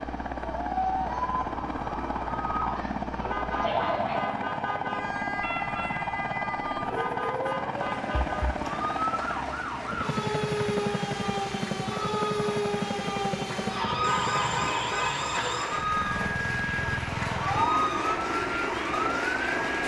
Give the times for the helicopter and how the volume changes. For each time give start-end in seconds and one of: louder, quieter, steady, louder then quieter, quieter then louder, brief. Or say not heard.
0.0-19.8 steady.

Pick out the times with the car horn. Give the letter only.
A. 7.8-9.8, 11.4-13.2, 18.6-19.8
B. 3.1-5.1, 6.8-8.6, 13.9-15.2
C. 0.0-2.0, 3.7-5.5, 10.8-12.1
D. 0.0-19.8
B.